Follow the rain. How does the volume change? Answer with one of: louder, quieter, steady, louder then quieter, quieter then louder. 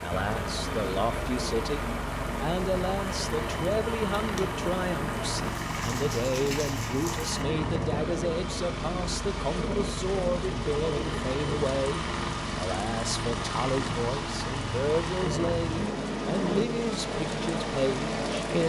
steady.